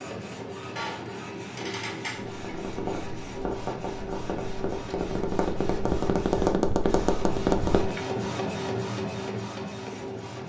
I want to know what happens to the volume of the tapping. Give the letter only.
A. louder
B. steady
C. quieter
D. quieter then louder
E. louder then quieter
A.